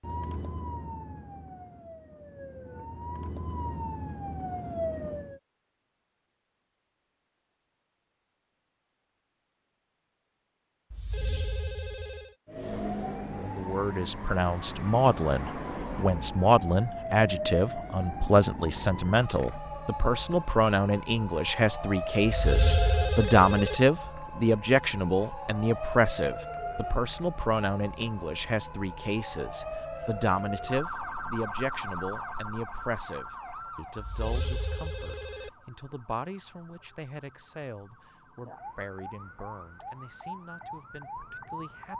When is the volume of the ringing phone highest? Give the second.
23 s.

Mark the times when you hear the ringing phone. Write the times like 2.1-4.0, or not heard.
10.9-12.3, 22.2-23.8, 34.0-35.5.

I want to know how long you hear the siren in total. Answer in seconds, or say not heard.
35 s.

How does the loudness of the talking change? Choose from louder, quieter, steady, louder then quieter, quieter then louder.
quieter.